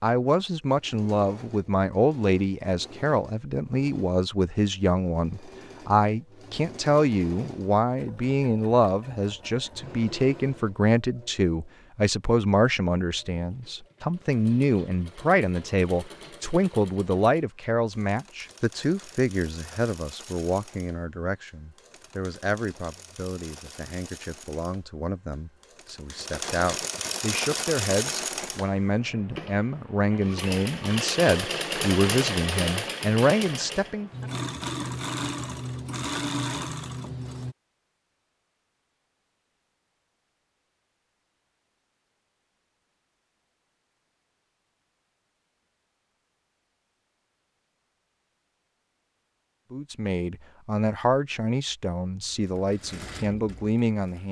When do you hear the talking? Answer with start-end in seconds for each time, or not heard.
0.0-34.1, 49.7-54.2.